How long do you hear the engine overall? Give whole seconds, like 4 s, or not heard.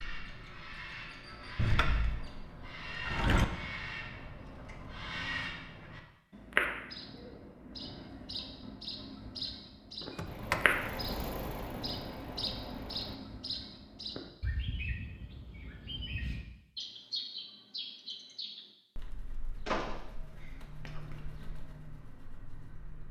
3 s.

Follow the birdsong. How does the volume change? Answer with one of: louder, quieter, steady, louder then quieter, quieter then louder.
louder then quieter.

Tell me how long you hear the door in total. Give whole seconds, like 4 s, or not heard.
4 s.